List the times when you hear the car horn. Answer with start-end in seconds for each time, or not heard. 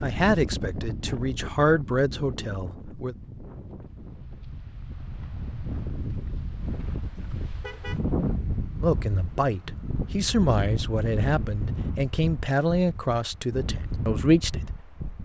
7.6-8.0.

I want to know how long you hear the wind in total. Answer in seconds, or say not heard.
15 s.